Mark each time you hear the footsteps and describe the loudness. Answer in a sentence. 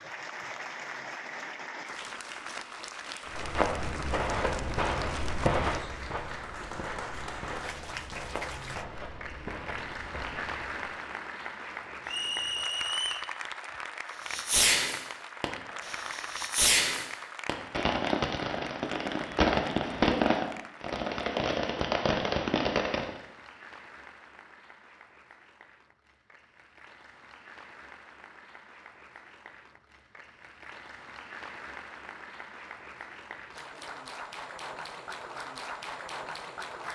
You can hear the footsteps from 3.3 to 10.9 s, getting quieter.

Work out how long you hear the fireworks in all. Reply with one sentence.
You can hear the fireworks for 9 seconds altogether.